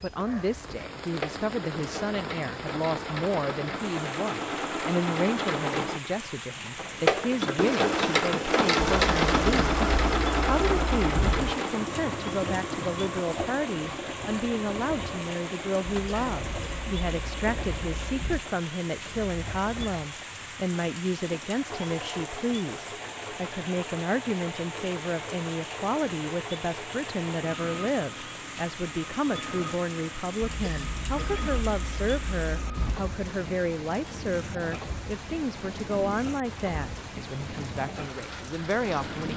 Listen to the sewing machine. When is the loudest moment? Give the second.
9 s.